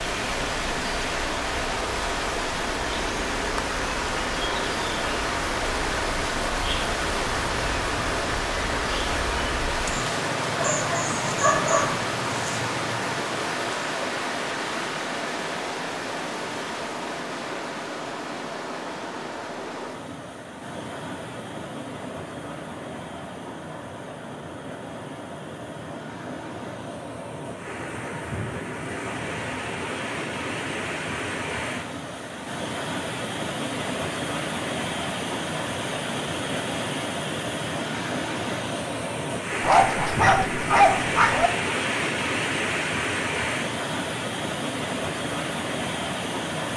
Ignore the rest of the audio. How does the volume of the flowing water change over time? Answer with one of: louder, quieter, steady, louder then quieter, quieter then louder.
quieter then louder.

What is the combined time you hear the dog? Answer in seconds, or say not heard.
3 s.